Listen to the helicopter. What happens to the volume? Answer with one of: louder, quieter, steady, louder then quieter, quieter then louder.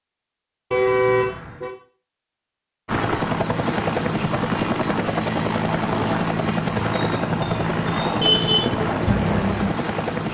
steady.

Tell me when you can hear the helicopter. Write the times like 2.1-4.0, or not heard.
2.9-10.2.